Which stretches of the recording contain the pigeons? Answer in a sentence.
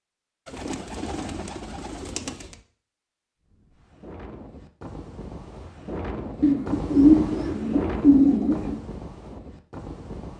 You can hear the pigeons from 0.5 to 2.5 s and from 6.4 to 8.8 s.